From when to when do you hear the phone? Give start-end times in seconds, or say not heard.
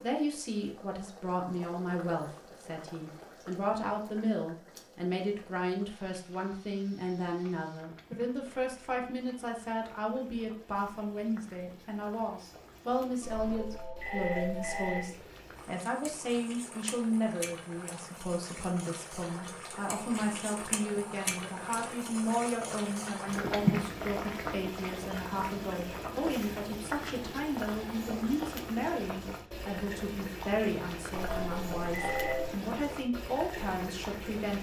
13.2-15.1, 31.2-32.5.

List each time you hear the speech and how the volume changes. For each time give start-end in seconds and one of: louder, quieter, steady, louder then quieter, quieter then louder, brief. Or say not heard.
0.0-34.5 steady.